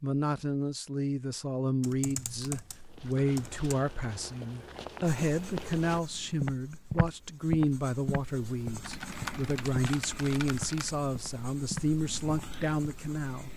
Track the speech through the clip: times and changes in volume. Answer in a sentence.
You can hear the speech from 0.0 to 13.5 s, at a steady volume.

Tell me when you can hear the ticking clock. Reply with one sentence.
You can't hear the ticking clock here.